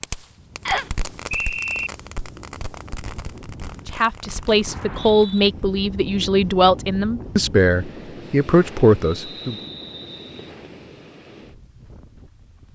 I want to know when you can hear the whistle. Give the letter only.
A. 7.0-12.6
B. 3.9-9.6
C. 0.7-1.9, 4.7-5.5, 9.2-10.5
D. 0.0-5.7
C.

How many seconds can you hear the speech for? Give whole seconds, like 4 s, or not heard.
6 s.